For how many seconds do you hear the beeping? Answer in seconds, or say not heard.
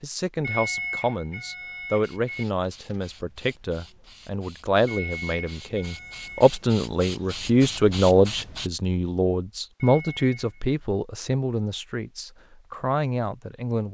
5 s.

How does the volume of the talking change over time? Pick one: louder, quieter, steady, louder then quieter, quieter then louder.
louder then quieter.